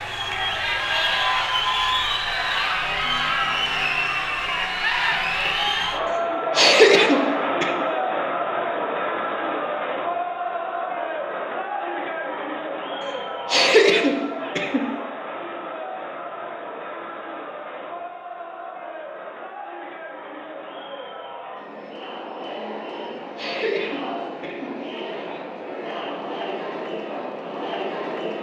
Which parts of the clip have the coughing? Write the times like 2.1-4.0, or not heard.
6.5-7.8, 13.4-14.9, 23.4-24.9.